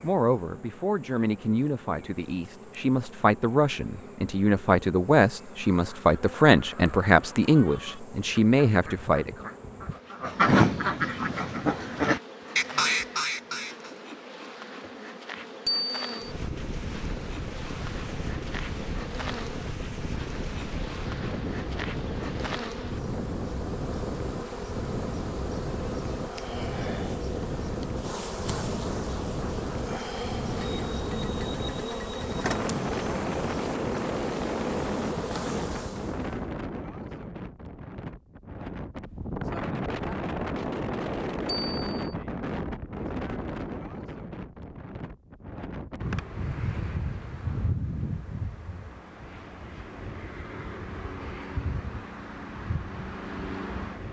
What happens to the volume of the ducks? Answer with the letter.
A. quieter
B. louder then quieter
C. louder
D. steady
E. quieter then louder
C.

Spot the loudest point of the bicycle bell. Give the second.
16 s.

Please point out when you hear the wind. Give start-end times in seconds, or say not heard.
16.2-54.0.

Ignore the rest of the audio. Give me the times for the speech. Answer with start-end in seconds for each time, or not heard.
0.0-9.5.